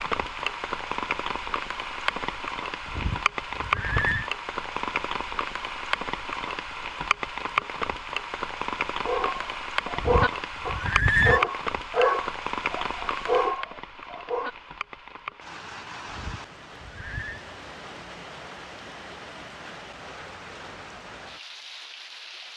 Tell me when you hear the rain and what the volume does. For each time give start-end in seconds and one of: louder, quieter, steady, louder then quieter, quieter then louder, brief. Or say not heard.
0.0-22.5 quieter.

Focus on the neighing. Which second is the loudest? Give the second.
11 s.